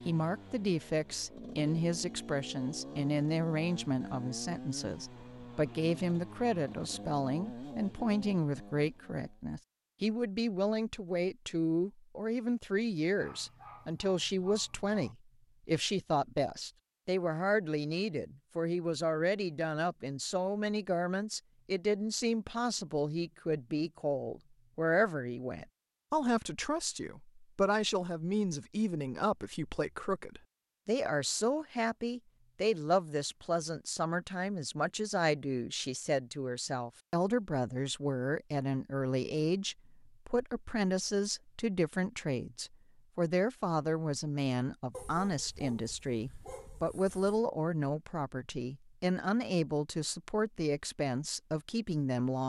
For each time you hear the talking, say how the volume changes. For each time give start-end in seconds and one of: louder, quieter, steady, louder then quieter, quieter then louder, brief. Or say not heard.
0.1-52.4 steady.